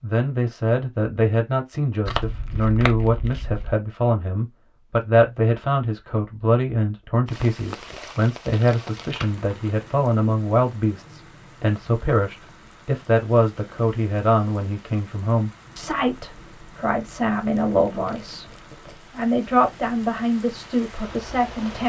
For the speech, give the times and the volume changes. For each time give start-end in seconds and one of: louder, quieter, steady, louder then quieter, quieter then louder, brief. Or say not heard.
0.0-21.8 steady.